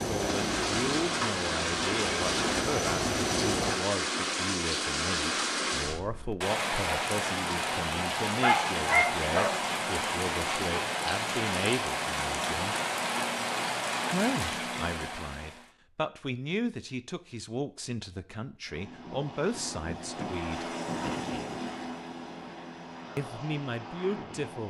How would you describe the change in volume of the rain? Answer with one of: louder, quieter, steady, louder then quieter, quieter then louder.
steady.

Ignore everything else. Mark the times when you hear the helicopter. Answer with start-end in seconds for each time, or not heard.
0.0-3.8, 18.6-24.6.